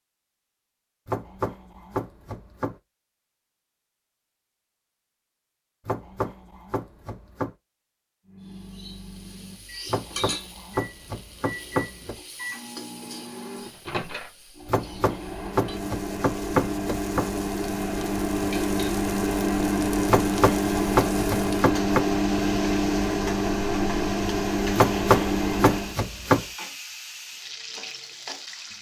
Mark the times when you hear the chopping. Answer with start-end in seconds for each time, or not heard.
1.1-2.8, 5.8-7.5, 9.8-12.2, 14.7-17.4, 20.1-22.1, 24.8-26.4.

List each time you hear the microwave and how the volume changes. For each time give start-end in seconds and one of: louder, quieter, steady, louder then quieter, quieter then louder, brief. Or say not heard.
8.2-25.9 louder.